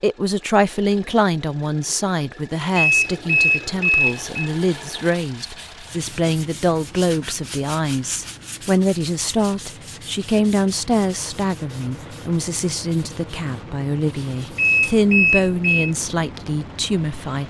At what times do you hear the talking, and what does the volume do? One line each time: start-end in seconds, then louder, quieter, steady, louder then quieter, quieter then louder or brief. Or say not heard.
0.0-17.4 steady.